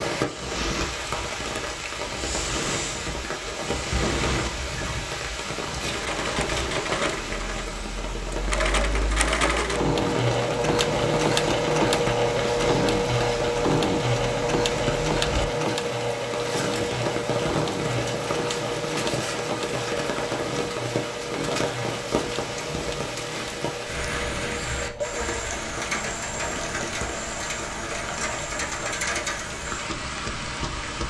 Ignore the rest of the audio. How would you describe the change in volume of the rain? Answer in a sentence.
The loudness of the rain stays about the same.